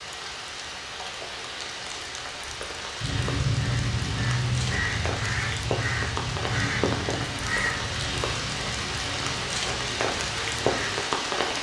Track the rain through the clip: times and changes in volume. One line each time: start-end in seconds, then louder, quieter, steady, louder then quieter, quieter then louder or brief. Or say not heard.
0.0-11.5 louder.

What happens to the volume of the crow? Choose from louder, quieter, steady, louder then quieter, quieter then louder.
quieter.